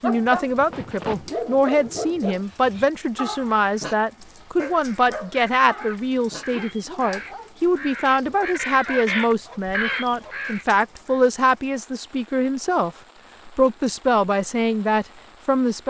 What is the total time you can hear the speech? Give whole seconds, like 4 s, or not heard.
16 s.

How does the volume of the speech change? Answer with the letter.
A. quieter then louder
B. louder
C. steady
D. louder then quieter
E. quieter
C.